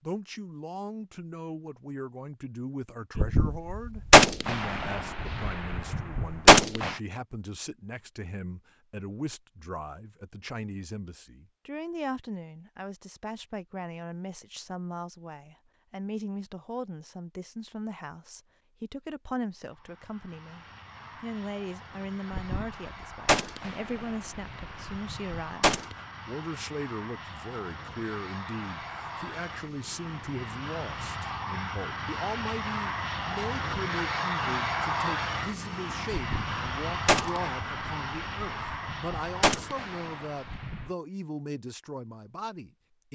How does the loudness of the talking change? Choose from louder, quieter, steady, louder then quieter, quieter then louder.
steady.